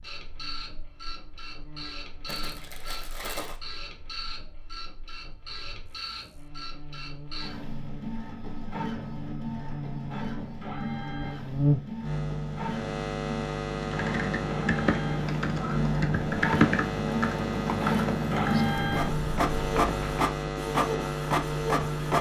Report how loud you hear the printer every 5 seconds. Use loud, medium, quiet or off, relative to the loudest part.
quiet, medium, medium, loud, loud.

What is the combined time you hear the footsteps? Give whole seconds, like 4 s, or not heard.
not heard.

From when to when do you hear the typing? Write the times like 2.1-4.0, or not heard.
13.8-20.1.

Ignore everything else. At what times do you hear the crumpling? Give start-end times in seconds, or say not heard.
2.2-3.6.